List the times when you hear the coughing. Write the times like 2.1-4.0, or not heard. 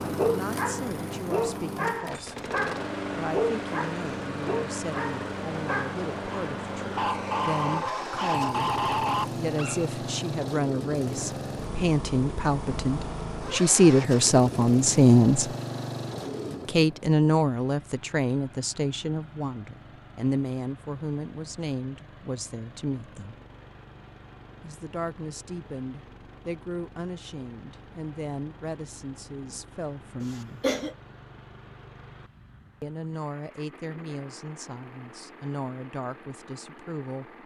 30.2-30.9.